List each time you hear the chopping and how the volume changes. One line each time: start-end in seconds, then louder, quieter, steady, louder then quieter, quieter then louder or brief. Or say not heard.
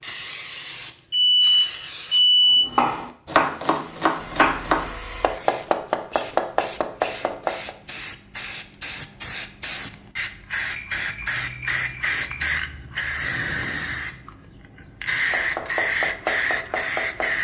2.6-7.7 steady
15.3-17.4 brief.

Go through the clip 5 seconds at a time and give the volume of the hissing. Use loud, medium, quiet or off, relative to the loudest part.
medium, medium, loud, loud.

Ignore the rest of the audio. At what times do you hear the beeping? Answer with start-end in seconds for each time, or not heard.
1.1-2.6, 10.8-12.6.